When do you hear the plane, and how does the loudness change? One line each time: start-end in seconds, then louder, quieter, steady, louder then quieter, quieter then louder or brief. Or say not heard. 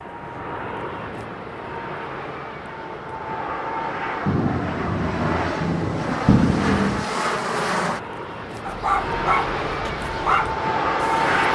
0.0-11.4 louder.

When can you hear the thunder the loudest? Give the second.
6 s.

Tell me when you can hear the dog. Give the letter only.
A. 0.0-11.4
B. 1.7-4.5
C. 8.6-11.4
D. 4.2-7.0
C.